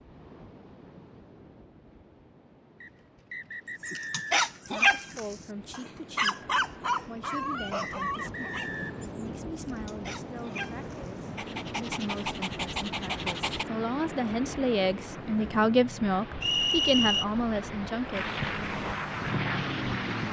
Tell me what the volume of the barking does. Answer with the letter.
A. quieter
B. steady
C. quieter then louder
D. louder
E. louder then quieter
C.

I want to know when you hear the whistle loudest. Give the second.
17 s.